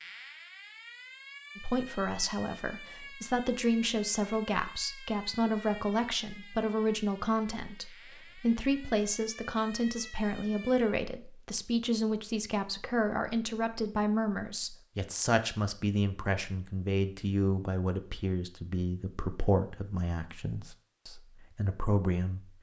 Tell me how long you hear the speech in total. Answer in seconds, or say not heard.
21 s.